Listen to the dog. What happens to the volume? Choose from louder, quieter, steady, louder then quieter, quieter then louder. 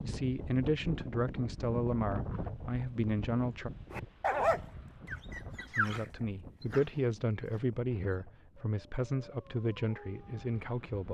quieter then louder.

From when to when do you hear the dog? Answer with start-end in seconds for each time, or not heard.
3.9-10.6.